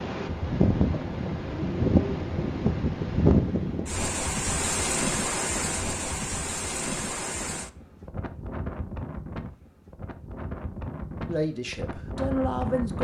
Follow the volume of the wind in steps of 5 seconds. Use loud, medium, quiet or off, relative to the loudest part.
loud, medium, medium.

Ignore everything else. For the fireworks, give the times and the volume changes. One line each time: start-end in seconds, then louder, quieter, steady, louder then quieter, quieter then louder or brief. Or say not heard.
not heard.